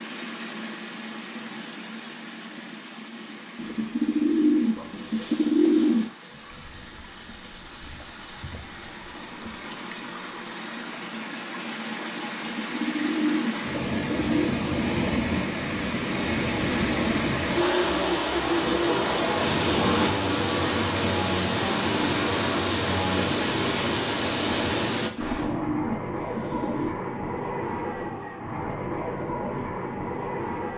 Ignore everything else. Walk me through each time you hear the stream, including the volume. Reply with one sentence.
The stream can be heard from 0.0 to 25.6 s, getting louder.